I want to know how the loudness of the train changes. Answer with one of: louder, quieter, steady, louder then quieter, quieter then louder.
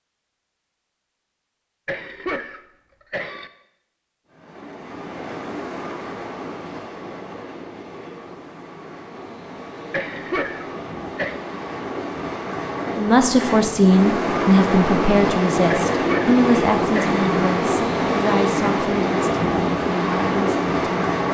louder.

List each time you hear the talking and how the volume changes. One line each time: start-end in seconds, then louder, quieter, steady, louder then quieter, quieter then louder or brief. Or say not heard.
12.9-21.2 quieter.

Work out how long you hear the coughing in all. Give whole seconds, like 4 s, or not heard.
5 s.